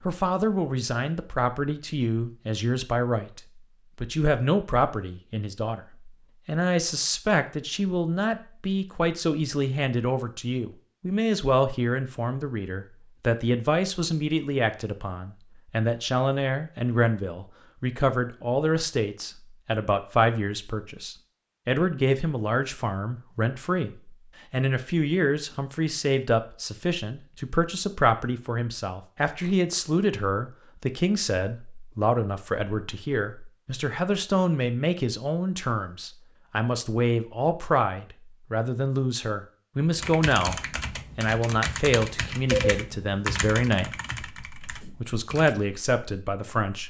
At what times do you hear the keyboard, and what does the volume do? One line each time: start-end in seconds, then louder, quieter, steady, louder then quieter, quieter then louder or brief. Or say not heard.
40.0-45.5 louder then quieter.